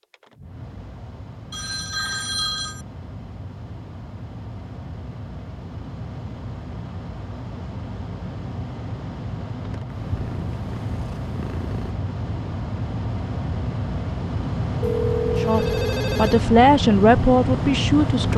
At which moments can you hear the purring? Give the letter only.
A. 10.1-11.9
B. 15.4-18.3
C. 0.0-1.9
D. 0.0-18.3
A.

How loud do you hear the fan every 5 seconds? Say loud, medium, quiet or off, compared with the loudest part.
quiet, medium, medium, loud.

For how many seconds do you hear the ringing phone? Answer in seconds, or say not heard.
3 s.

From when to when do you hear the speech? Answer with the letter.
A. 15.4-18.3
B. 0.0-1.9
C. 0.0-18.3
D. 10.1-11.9
A.